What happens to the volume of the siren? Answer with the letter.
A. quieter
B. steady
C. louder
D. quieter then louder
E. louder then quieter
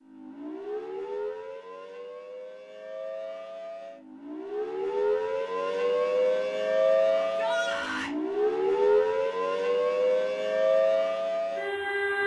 C.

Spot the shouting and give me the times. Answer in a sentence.
The shouting can be heard from 7.2 to 8.1 s.